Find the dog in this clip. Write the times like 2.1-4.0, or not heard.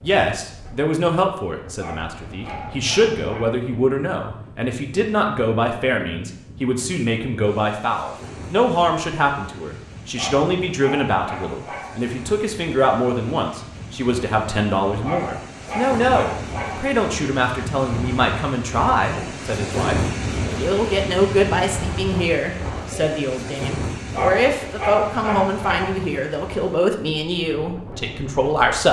1.8-3.5, 10.2-12.1, 15.0-16.9, 24.1-25.9.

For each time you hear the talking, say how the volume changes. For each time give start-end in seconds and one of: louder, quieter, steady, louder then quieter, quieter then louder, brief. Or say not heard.
0.0-28.8 steady.